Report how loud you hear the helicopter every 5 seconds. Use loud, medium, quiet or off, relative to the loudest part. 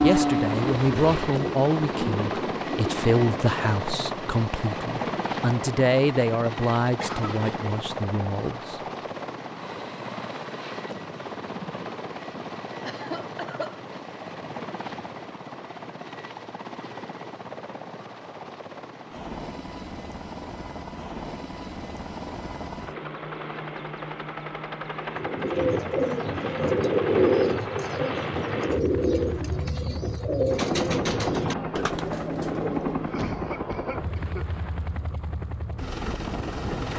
loud, loud, medium, medium, medium, loud, loud, loud.